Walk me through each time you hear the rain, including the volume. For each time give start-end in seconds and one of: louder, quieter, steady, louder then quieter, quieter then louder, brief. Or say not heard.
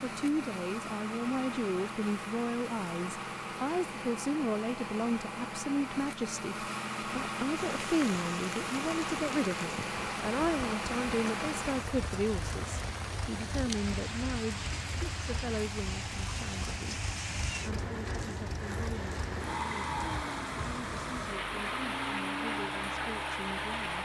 7.5-24.0 steady.